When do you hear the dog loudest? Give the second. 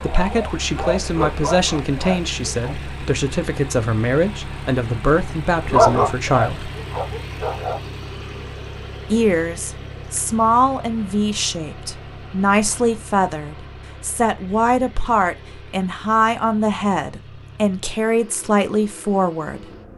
6 s.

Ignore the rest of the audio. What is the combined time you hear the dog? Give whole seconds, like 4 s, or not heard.
5 s.